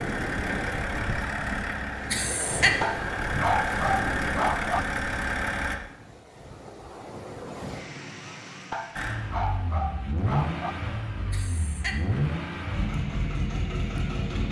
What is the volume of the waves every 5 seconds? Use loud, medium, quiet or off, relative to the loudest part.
loud, medium, off.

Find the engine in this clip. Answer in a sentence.
You can hear the engine from 0.0 to 5.8 s and from 8.9 to 14.4 s.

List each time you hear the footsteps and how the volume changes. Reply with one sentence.
The footsteps can't be heard in this clip.